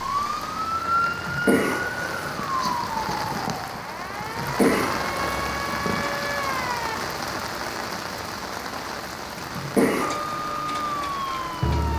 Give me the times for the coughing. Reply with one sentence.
You can hear the coughing from 1.1 to 2.4 s, from 4.2 to 5.5 s and from 9.3 to 10.1 s.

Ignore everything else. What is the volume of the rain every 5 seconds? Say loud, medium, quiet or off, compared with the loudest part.
loud, loud, medium.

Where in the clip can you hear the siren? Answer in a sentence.
The siren can be heard from 0.0 to 7.0 s and from 9.9 to 11.9 s.